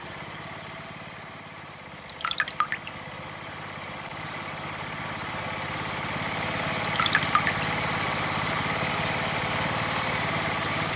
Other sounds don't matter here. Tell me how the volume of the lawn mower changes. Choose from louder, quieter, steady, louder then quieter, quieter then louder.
louder.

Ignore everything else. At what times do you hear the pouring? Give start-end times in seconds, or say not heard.
1.9-2.9, 6.8-7.7.